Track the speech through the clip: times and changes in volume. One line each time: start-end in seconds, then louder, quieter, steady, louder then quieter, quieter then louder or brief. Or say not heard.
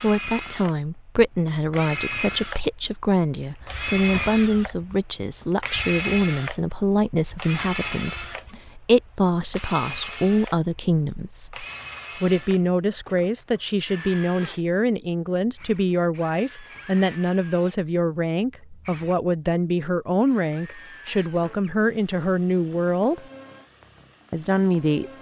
0.0-23.2 steady
24.3-25.1 brief.